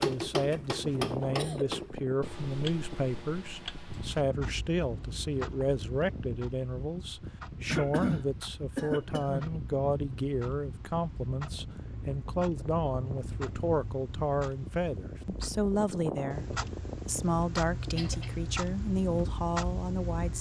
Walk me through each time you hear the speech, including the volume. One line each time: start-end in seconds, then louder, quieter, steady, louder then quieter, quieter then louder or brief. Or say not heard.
0.0-20.3 steady.